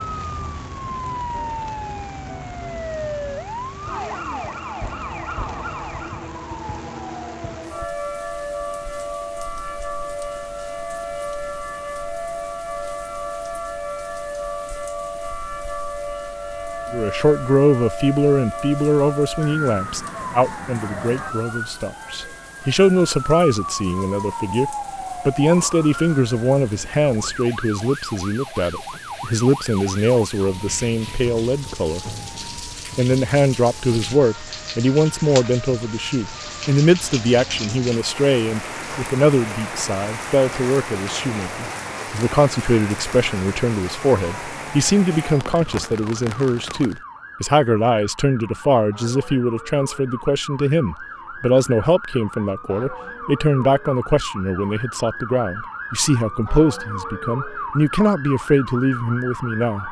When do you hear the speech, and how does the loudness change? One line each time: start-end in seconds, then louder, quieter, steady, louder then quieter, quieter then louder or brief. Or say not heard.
16.9-32.1 steady
33.0-59.8 steady.